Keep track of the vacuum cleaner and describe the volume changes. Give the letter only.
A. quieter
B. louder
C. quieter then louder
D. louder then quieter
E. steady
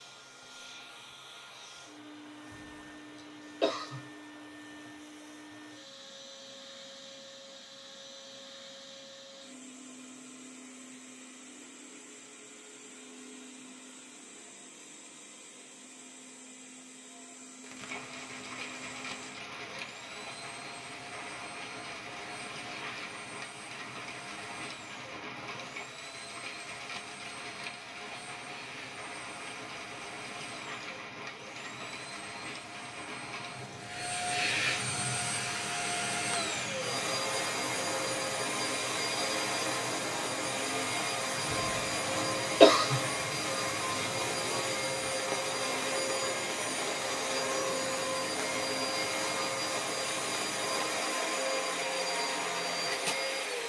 B.